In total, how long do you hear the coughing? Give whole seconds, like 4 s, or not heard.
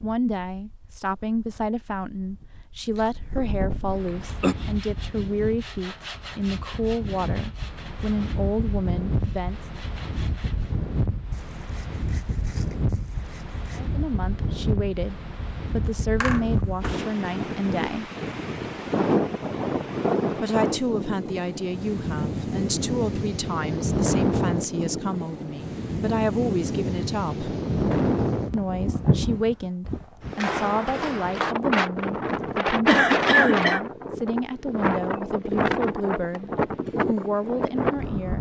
3 s.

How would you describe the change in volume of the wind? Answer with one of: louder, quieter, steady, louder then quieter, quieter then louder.
louder.